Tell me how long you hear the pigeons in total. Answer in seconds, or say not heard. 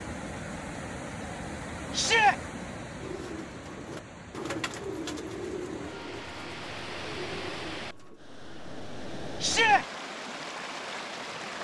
5 s.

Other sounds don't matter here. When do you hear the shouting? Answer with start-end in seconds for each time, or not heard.
1.9-2.4, 9.4-9.8.